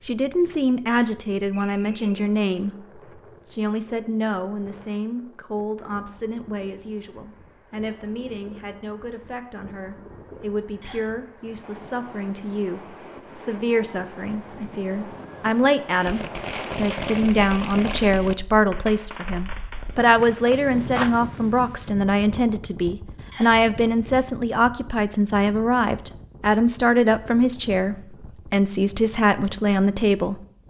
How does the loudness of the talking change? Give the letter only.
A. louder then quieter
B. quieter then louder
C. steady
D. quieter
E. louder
B.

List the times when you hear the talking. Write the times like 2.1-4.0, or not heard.
0.1-30.4.